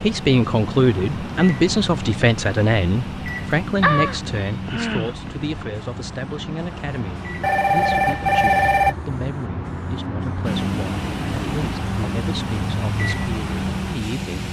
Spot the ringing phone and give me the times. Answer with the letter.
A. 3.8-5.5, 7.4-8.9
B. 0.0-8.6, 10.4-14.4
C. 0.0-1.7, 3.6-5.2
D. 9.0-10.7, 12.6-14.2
A.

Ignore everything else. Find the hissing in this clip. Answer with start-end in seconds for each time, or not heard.
0.0-14.4.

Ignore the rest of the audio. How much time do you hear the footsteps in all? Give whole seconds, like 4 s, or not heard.
not heard.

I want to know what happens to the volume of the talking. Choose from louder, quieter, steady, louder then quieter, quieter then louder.
quieter.